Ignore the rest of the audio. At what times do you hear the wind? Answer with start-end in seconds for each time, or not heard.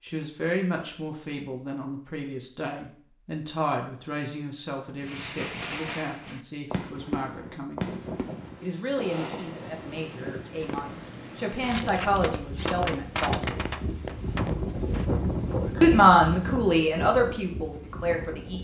7.8-18.5.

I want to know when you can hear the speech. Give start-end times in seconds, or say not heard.
0.0-7.8, 8.6-13.4, 15.8-18.5.